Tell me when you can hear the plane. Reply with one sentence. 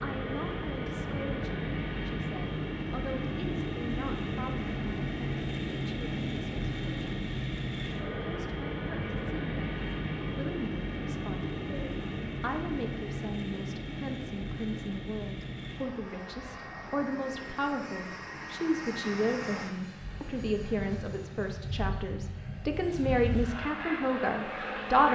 The plane can be heard from 0.0 to 25.1 s.